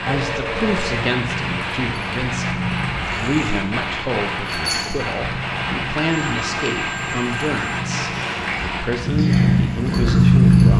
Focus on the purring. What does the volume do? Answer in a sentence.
The loudness of the purring goes up.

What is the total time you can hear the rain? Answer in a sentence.
You can hear the rain for 11 seconds altogether.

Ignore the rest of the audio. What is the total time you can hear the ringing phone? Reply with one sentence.
You can hear the ringing phone for 3 seconds altogether.